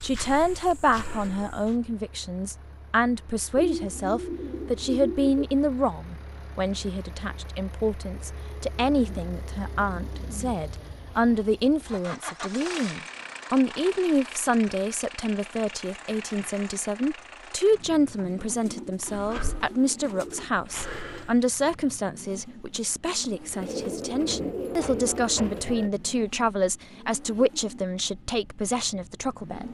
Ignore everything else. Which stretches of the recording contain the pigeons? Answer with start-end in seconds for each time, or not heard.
3.5-5.5, 8.8-10.6, 17.9-20.5, 23.6-25.9.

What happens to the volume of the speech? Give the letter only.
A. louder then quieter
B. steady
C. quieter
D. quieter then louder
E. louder
B.